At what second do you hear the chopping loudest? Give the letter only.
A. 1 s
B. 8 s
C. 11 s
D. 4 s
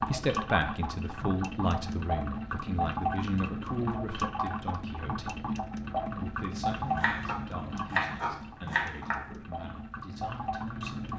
B.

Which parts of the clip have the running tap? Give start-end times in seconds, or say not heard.
0.0-11.1.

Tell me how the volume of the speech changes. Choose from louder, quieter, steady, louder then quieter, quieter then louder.
quieter.